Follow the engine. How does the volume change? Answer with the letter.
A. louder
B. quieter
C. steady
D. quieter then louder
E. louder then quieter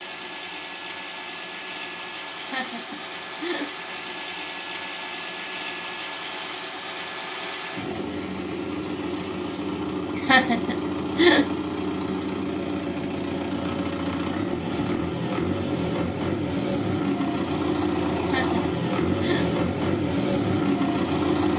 A.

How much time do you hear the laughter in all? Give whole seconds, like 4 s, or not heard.
4 s.